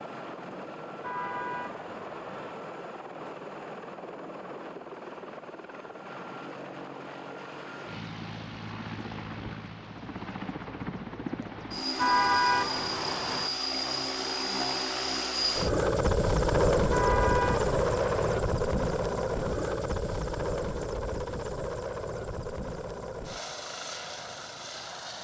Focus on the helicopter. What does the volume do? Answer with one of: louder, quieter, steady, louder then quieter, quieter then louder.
louder then quieter.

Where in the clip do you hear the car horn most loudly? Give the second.
12 s.